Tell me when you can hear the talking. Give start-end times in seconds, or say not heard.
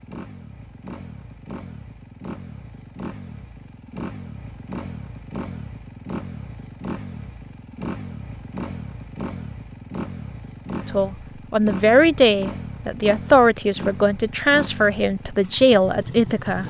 10.8-16.6.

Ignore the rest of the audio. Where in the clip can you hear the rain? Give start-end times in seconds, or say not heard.
not heard.